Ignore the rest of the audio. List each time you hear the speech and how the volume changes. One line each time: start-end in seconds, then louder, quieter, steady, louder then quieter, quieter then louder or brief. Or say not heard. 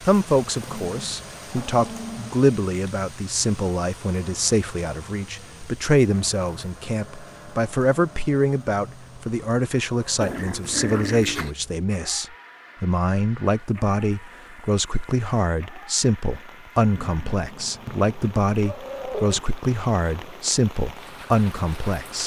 0.1-22.2 steady.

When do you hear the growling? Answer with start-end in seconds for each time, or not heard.
0.7-2.4, 10.2-11.5, 16.9-19.4.